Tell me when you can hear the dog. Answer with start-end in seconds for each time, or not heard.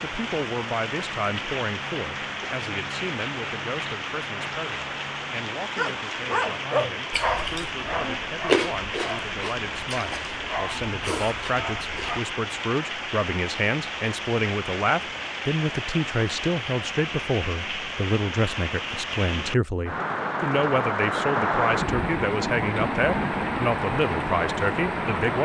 5.8-12.2.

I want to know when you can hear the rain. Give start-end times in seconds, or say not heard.
0.0-25.3.